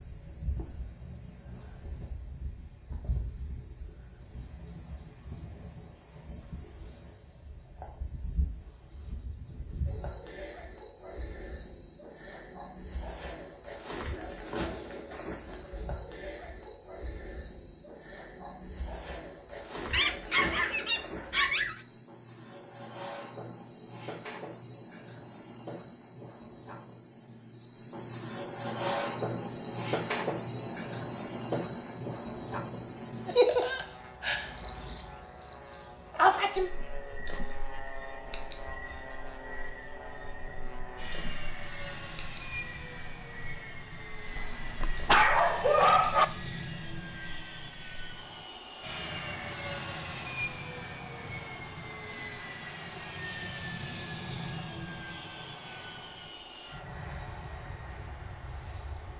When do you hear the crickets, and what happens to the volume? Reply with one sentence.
You can hear the crickets from 0.0 to 59.1 s, getting louder then quieter.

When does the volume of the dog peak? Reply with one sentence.
The volume of the dog peaks at 45 seconds.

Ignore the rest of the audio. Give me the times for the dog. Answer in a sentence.
The dog can be heard from 19.9 to 21.8 s and from 44.4 to 46.2 s.